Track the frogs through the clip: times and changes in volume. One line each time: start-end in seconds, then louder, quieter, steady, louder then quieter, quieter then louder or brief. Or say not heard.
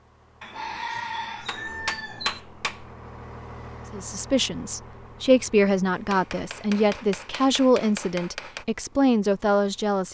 not heard.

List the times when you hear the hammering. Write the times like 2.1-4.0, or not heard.
1.4-2.9, 6.0-8.7.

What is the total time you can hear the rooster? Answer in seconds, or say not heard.
2 s.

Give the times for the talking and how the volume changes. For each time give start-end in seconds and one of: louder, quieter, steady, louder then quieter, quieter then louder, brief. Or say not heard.
3.9-10.1 steady.